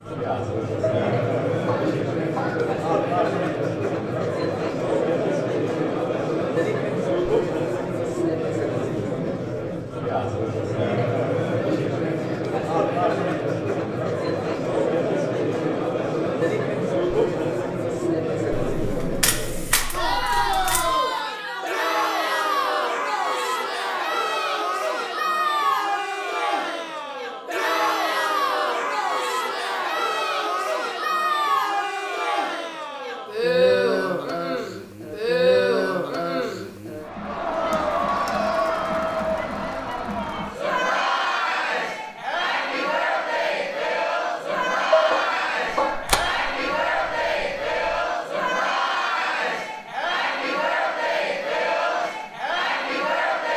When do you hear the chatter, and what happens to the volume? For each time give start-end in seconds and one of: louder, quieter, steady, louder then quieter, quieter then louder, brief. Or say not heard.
0.0-53.5 steady.